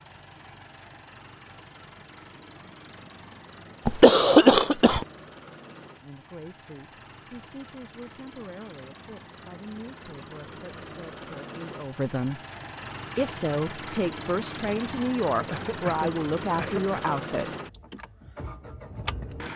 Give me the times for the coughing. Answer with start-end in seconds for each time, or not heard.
3.9-5.0, 15.4-17.2.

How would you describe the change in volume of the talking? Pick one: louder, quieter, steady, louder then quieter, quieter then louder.
louder.